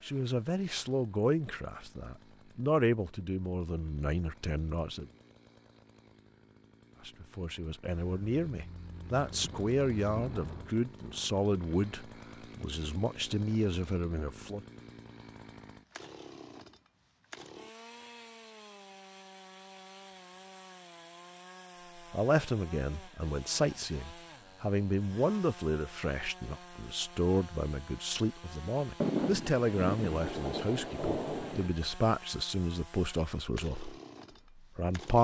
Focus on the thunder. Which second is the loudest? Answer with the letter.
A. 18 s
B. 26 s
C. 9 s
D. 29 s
D.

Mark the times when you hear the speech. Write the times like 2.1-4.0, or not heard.
0.0-5.0, 7.0-14.6, 22.1-34.0, 34.5-35.1.